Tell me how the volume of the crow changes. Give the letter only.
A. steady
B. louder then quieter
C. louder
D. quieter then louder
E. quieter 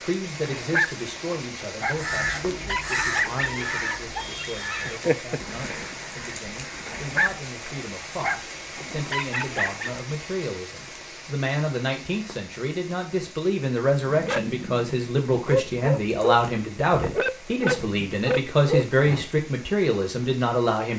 E.